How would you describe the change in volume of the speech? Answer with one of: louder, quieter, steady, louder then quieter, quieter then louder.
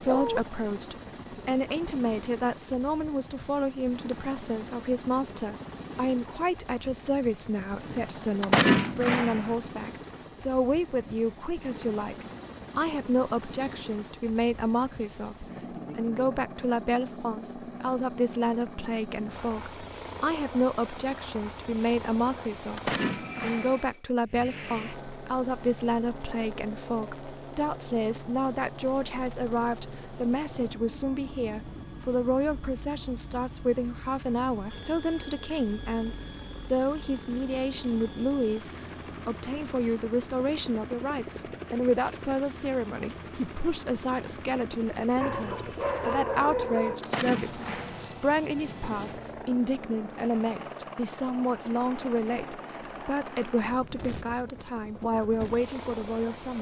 steady.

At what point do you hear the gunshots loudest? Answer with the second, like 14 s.
9 s.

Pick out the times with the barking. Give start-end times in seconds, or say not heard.
0.1-0.5, 45.2-47.0.